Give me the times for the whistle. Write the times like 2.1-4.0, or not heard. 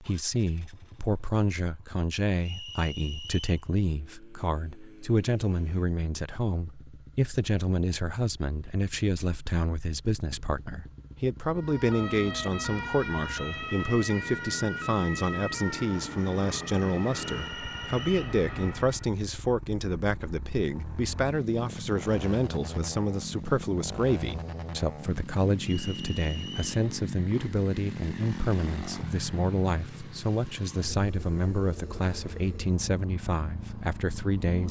2.4-3.6, 17.3-18.4, 25.6-26.6.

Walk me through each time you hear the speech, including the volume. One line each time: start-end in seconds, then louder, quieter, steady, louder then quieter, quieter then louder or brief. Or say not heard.
0.0-34.6 steady.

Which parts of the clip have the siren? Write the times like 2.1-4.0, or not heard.
11.6-19.1.